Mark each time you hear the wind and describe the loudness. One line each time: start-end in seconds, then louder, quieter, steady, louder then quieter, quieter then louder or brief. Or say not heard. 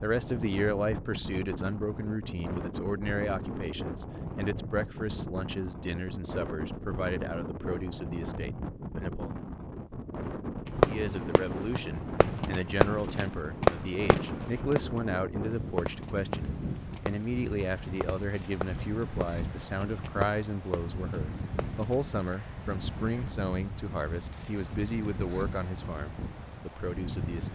0.0-27.5 steady.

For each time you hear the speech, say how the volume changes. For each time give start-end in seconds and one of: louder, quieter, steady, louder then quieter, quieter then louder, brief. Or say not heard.
0.0-9.3 quieter
10.8-27.5 steady.